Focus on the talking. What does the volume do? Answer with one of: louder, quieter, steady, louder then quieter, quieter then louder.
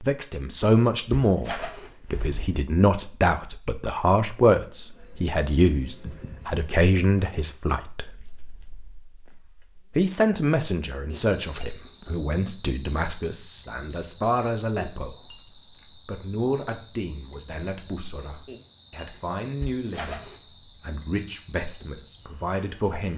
quieter.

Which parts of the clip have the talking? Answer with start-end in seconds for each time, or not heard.
0.0-9.1, 9.9-15.3, 16.1-23.1.